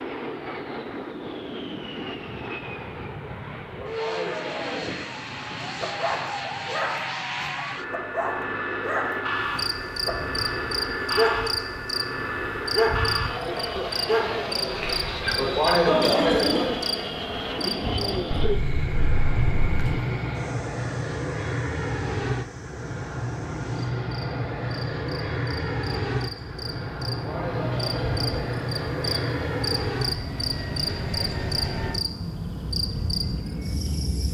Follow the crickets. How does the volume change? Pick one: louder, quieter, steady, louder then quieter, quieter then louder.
quieter then louder.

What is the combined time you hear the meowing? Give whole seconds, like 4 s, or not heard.
2 s.